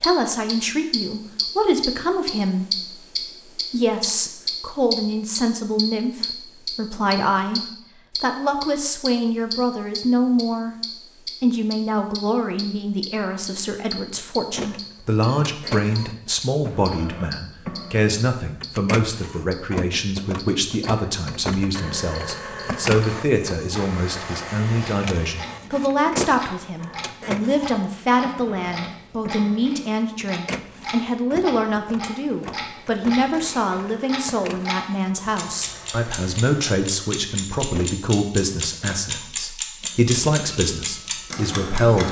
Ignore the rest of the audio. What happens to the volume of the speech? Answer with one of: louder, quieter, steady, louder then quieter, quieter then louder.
steady.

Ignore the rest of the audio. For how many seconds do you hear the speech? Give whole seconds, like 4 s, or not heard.
41 s.